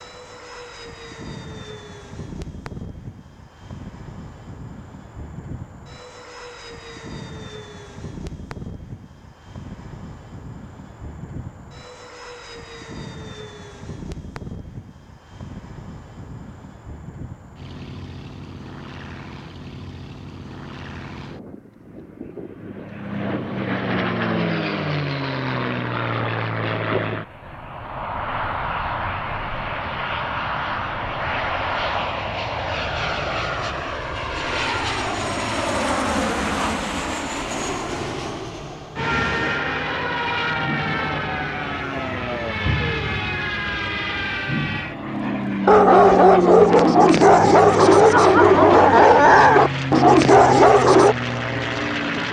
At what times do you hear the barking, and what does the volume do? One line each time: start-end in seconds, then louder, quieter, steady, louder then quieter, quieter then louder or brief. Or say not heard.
45.6-51.1 steady.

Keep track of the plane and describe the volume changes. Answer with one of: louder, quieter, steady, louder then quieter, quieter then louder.
louder.